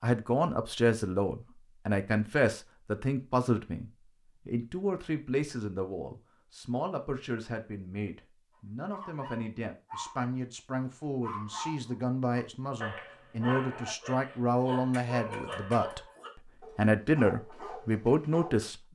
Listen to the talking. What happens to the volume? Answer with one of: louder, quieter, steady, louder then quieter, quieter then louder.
quieter then louder.